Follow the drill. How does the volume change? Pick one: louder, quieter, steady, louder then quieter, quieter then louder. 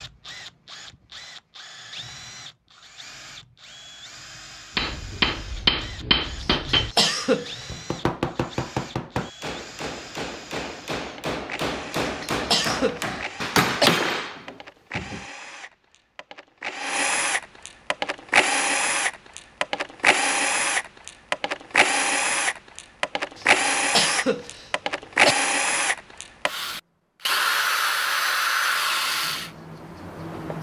louder.